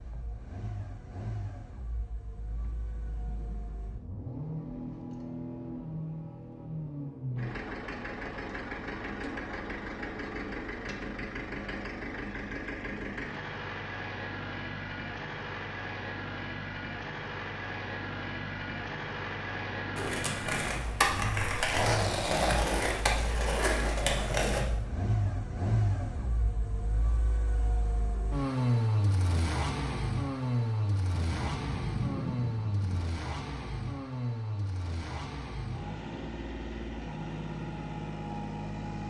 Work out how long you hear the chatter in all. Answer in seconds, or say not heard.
not heard.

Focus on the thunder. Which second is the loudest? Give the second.
32 s.